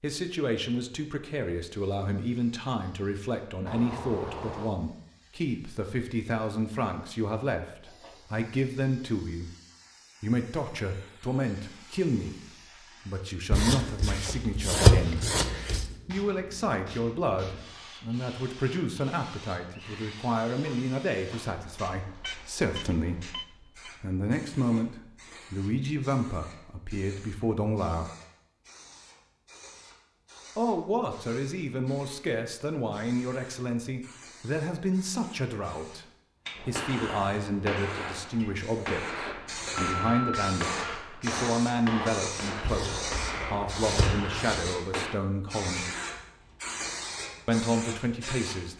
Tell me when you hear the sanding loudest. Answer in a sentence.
The loudest moment of the sanding is at 15 seconds.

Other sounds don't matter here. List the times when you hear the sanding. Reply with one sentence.
The sanding can be heard from 13.5 to 15.9 s and from 42.6 to 44.7 s.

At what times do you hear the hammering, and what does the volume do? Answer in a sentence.
The hammering can be heard from 36.5 to 45.2 s, at a steady volume.